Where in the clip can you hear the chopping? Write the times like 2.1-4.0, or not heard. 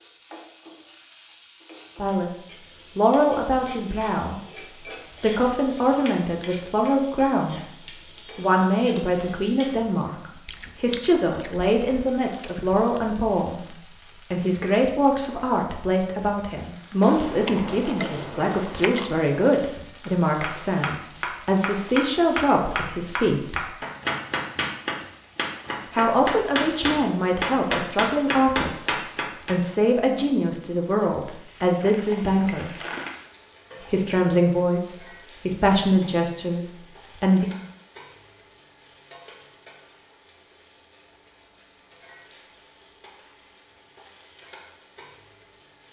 20.0-29.6.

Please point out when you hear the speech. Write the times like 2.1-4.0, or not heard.
1.9-4.5, 5.2-23.6, 25.9-32.8, 33.8-37.5.